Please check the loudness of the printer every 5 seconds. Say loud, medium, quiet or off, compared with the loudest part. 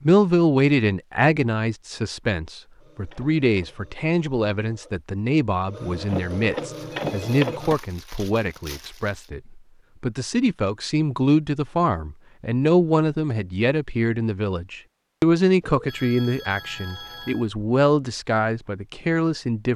quiet, loud, off, off.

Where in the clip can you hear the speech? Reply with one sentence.
The speech can be heard from 0.0 to 19.7 s.